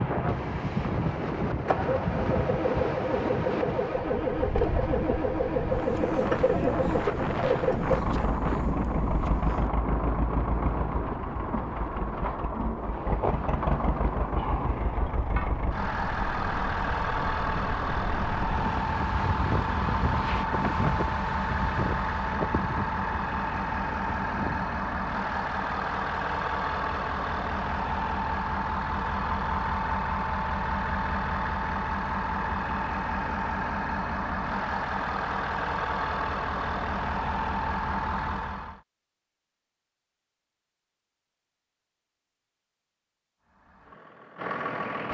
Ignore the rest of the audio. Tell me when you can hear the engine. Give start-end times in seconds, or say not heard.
0.0-38.8, 43.4-45.1.